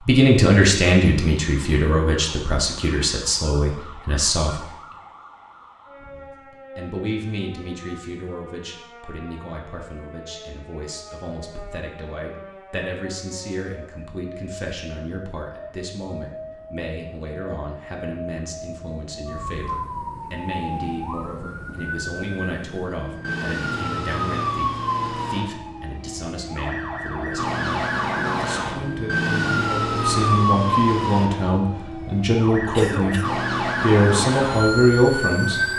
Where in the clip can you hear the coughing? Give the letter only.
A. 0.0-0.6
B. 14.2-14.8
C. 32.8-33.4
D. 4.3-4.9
C.